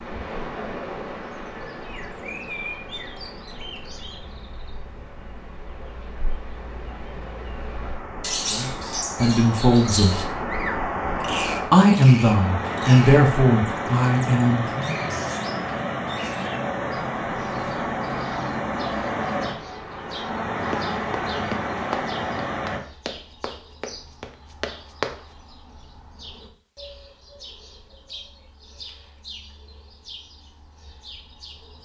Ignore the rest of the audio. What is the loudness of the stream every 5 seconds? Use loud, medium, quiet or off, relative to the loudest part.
medium, medium, loud, loud, loud, off, off.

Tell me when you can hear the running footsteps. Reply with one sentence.
You can hear the running footsteps from 20.7 to 25.1 s.